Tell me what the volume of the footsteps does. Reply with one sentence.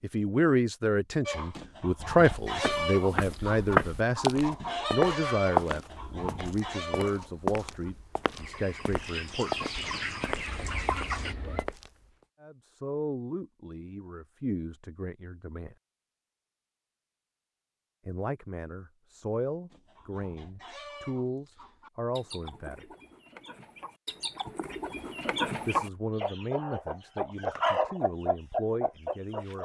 The loudness of the footsteps goes down.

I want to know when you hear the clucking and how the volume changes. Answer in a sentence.
You can hear the clucking from 1.2 to 11.3 s, getting quieter then louder; and from 19.7 to 29.6 s, getting louder.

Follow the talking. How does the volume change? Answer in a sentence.
The volume of the talking goes down.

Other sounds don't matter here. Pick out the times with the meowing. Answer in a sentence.
The meowing can be heard from 10.4 to 11.7 s.